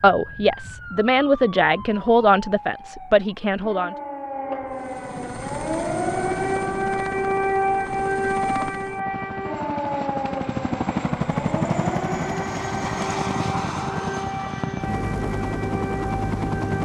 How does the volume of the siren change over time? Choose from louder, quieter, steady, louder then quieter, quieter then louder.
louder then quieter.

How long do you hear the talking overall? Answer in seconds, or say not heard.
4 s.